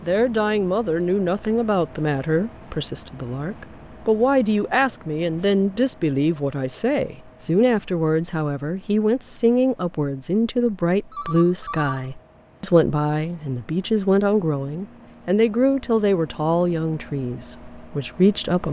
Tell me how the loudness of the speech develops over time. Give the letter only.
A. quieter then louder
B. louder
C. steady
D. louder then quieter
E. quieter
C.